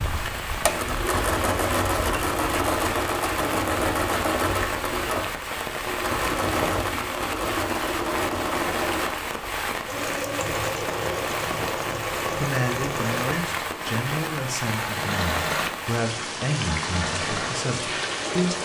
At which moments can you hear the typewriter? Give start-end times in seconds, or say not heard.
not heard.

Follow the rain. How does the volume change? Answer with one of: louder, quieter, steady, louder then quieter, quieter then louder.
steady.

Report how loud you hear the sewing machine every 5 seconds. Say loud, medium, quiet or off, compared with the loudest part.
loud, loud, medium, medium.